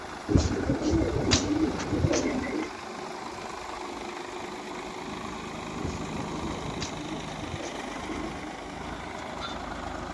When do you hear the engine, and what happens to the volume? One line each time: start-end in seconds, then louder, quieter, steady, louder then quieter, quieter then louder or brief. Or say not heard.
0.0-10.0 steady.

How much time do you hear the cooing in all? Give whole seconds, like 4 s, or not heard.
5 s.